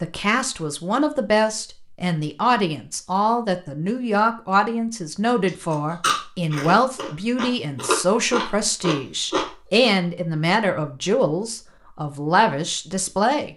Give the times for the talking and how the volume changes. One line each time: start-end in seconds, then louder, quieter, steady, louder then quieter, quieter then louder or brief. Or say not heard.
0.0-13.5 steady.